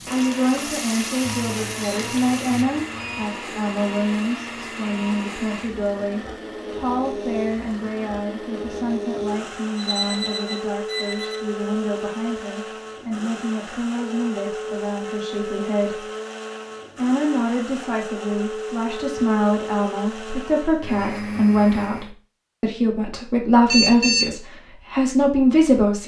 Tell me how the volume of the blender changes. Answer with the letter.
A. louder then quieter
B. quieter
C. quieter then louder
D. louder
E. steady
E.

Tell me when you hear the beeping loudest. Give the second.
24 s.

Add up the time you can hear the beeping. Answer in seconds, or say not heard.
4 s.